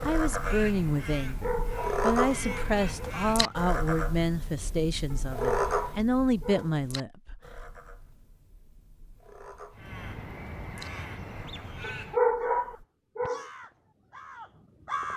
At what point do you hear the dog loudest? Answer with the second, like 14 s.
12 s.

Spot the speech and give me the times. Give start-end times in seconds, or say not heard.
0.1-7.4.